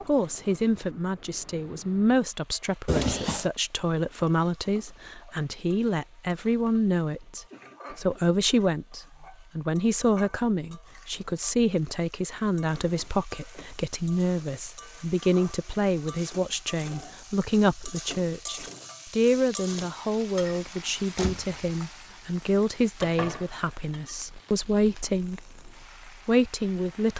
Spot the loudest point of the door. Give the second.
3 s.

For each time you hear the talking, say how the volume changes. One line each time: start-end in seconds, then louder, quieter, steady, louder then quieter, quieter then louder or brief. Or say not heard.
0.1-27.1 steady.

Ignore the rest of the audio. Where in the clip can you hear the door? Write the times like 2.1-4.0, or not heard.
2.9-3.5, 20.5-21.6.